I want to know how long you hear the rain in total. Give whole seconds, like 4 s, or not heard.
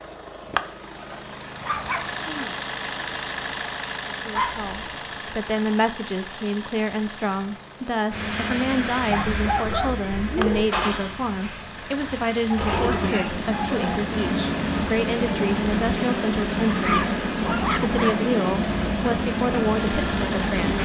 13 s.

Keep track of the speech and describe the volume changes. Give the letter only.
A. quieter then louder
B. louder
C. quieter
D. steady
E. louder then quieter
D.